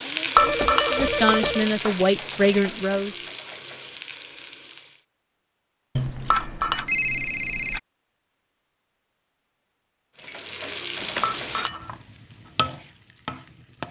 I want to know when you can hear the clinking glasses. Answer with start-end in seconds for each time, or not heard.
0.3-1.4, 6.3-6.8, 11.2-11.9.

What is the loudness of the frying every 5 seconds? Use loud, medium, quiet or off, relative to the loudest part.
loud, off, loud.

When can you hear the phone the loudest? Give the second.
7 s.